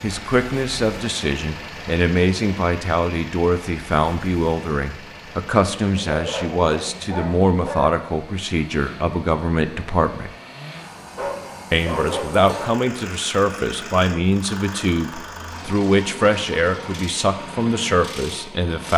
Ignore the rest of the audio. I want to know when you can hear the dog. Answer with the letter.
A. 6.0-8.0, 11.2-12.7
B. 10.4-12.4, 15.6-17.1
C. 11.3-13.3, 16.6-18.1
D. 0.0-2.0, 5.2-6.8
A.